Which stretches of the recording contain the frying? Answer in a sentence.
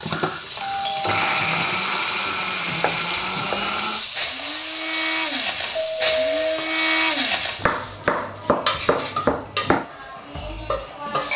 The frying can be heard from 0.0 to 11.3 s.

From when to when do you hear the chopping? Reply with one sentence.
You can hear the chopping from 1.4 to 3.8 s and from 7.5 to 9.8 s.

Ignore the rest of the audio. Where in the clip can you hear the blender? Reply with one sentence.
You can hear the blender from 0.0 to 7.7 s.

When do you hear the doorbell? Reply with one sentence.
You can hear the doorbell from 0.6 to 1.5 s and from 5.8 to 6.6 s.